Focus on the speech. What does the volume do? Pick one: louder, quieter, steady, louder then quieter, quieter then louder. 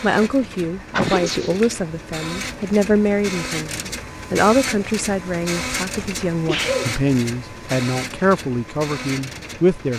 steady.